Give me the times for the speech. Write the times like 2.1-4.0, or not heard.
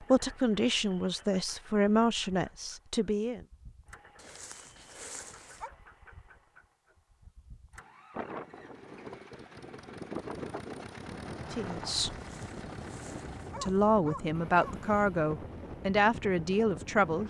0.0-3.4, 11.5-12.2, 13.6-17.2.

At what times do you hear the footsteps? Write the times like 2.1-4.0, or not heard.
not heard.